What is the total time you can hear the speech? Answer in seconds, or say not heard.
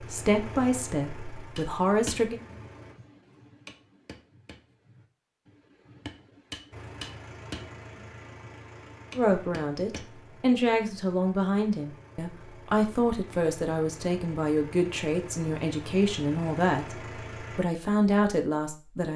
12 s.